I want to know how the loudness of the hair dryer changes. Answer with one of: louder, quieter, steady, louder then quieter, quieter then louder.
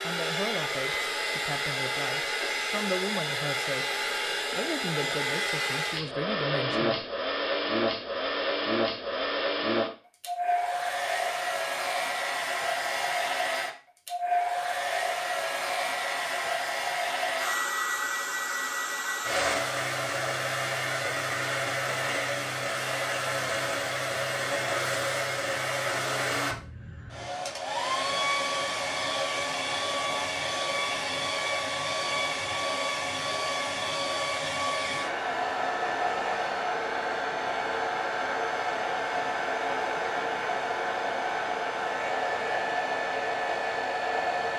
steady.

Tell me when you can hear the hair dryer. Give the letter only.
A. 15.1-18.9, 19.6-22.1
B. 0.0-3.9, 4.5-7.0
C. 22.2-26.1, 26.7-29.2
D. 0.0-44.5
D.